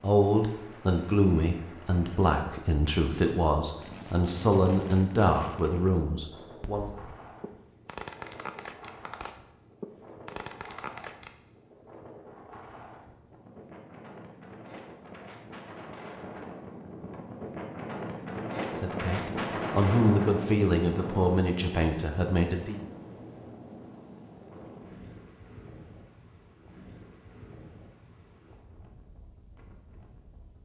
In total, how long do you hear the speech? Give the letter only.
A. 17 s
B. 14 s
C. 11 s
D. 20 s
C.